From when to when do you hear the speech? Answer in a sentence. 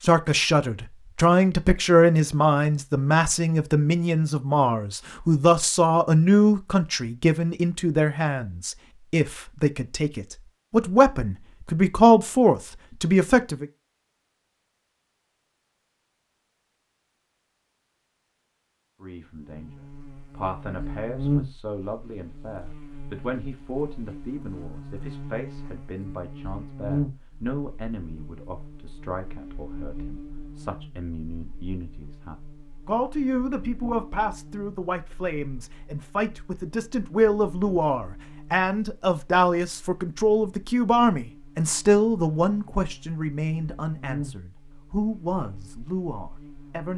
The speech can be heard from 0.0 to 13.7 s and from 19.0 to 46.9 s.